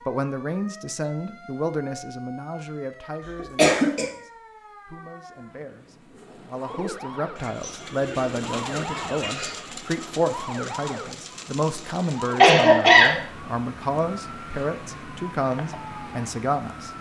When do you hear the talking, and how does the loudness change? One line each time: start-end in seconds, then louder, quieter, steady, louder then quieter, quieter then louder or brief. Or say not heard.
0.1-16.9 quieter then louder.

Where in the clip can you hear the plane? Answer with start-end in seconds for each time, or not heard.
not heard.